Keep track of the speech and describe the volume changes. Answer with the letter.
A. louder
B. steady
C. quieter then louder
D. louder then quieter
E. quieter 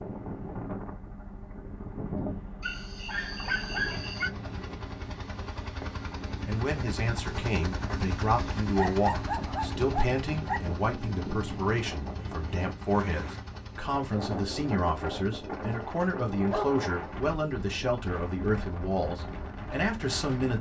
B.